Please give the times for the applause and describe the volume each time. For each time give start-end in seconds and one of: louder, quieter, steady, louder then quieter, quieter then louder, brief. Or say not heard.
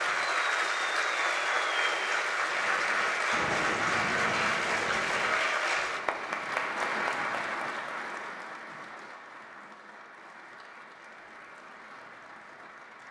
0.0-13.0 quieter.